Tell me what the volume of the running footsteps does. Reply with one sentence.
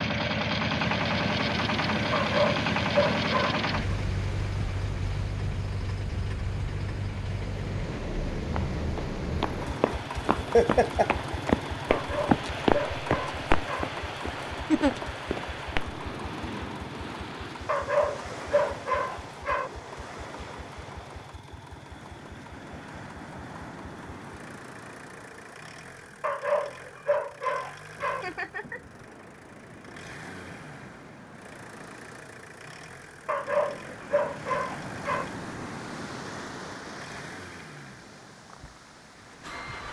The loudness of the running footsteps goes up, then down.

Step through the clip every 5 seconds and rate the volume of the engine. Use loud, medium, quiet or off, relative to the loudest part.
loud, medium, medium, quiet, quiet, quiet, quiet, quiet.